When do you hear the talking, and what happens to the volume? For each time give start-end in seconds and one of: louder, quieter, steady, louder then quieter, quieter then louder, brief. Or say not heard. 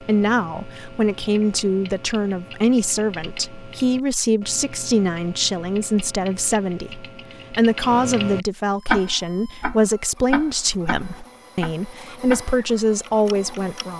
0.0-13.9 steady.